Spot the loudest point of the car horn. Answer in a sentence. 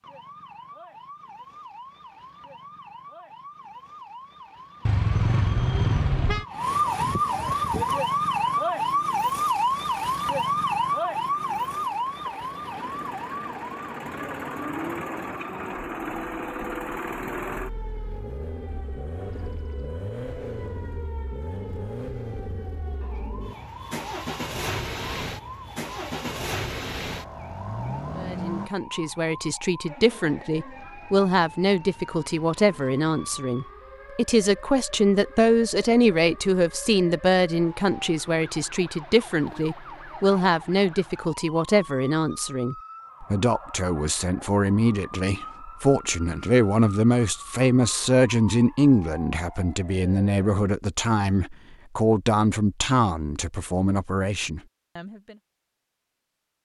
The volume of the car horn peaks at 6 seconds.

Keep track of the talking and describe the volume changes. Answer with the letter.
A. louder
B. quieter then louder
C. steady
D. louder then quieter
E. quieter
C.